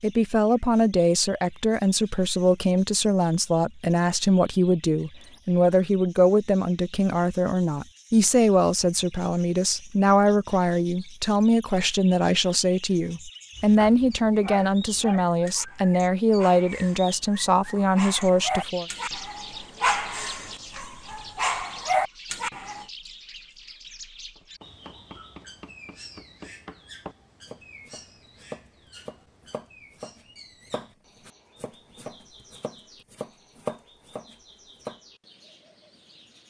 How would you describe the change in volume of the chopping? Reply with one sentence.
The loudness of the chopping goes up.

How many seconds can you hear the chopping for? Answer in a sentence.
You can hear the chopping for 11 seconds altogether.